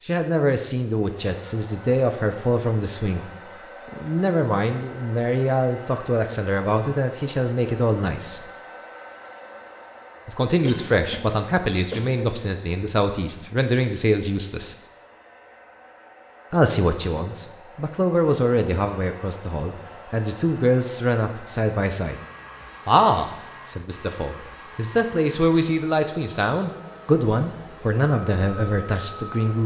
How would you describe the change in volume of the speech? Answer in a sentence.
The volume of the speech stays about the same.